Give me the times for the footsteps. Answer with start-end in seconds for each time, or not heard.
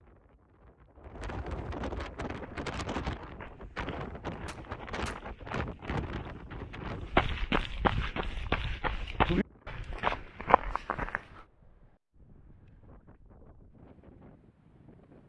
2.2-11.4.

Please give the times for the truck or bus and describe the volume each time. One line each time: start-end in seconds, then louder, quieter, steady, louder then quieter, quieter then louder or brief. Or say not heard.
not heard.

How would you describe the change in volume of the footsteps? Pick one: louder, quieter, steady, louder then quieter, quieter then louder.
louder.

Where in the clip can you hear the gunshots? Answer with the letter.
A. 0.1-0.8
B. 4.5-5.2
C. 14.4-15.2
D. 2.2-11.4
B.